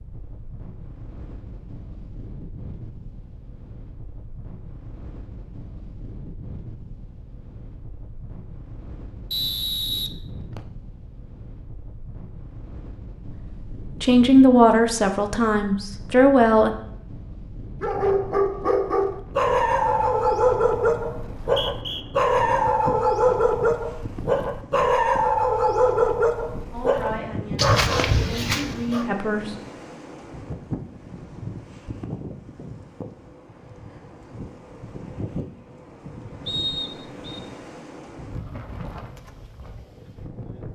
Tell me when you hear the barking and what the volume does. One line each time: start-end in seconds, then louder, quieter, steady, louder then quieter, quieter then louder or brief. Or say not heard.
17.8-29.1 steady.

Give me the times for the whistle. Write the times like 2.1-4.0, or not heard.
9.3-10.6, 21.4-22.1, 36.5-37.4.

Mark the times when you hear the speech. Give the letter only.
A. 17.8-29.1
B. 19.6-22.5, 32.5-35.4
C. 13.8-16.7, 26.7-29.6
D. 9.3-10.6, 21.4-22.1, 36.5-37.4
C.